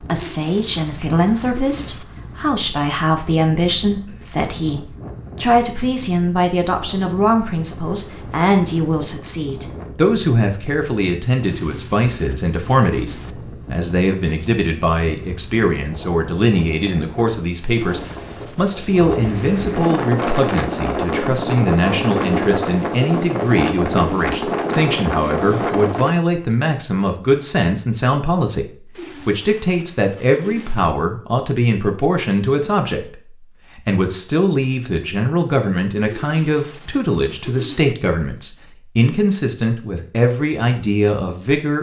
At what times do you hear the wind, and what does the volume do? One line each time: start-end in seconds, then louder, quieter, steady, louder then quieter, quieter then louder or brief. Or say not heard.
0.0-26.1 louder.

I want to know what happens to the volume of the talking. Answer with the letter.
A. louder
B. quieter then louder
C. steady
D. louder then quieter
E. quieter
C.